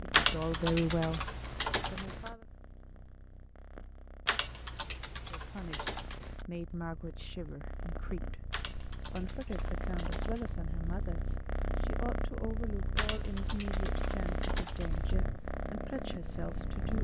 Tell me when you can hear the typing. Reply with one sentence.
The typing can be heard from 0.1 to 2.3 s, from 4.2 to 6.4 s, from 8.5 to 10.6 s and from 12.9 to 15.2 s.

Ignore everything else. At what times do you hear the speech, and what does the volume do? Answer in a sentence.
You can hear the speech briefly from 0.0 to 2.5 s; and from 5.3 to 16.9 s, at a steady volume.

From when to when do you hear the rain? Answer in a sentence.
The rain can't be heard in this clip.